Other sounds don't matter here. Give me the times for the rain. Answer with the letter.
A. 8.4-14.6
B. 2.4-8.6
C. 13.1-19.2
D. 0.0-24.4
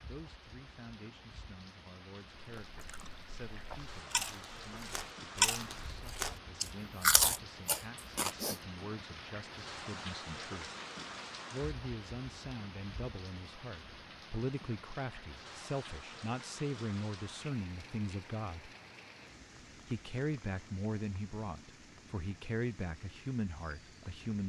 D.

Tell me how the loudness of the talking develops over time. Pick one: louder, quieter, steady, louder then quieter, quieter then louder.
louder.